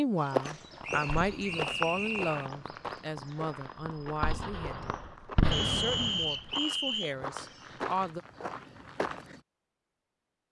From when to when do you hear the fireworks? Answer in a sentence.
The fireworks can be heard from 0.5 to 6.3 s.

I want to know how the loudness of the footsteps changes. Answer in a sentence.
The volume of the footsteps goes down, then up.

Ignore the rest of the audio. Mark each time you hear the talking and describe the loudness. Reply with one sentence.
The talking can be heard from 0.0 to 8.2 s, getting quieter.